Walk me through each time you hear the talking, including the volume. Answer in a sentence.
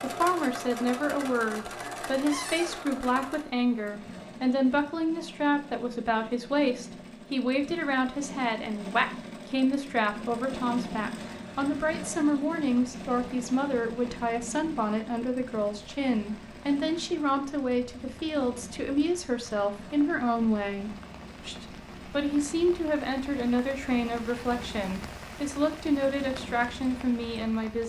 You can hear the talking from 0.0 to 27.8 s, at a steady volume.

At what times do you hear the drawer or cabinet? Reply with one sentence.
You can hear the drawer or cabinet from 2.3 to 2.9 s.